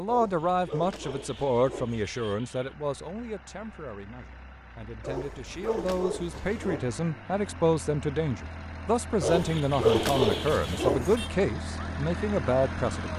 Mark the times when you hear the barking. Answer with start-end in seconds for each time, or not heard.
0.1-2.4, 5.0-6.8, 9.2-11.3.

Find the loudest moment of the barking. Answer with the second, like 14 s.
10 s.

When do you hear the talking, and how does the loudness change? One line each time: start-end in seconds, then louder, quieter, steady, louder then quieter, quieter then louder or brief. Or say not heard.
0.0-13.1 quieter then louder.